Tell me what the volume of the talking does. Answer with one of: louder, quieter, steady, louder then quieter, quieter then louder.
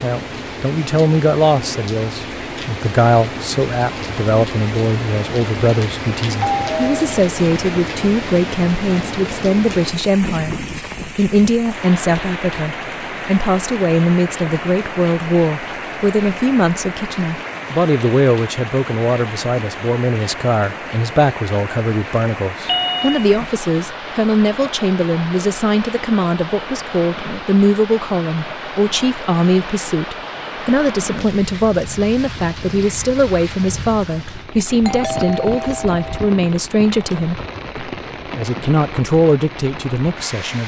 steady.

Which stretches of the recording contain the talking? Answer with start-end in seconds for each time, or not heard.
0.0-40.6.